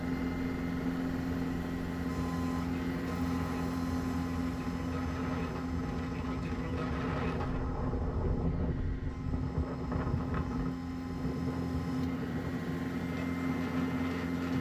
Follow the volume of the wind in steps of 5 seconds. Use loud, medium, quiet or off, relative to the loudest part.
medium, loud, loud.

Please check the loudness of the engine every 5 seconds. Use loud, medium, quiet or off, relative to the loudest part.
loud, medium, loud.